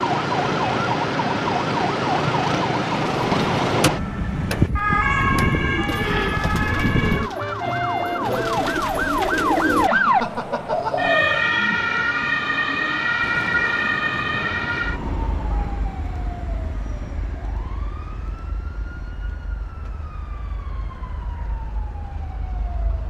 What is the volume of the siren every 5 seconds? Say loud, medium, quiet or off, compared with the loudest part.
loud, loud, loud, quiet, quiet.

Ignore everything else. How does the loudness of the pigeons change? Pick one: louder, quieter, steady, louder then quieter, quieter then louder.
quieter then louder.